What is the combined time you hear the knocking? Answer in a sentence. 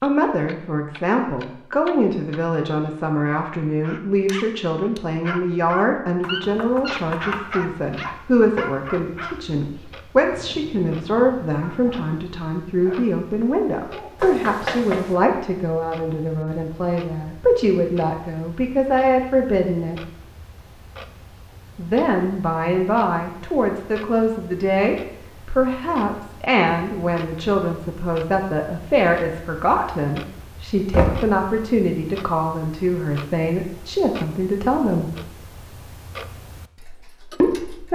You can hear the knocking for 3 seconds altogether.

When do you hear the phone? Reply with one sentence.
You can't hear the phone here.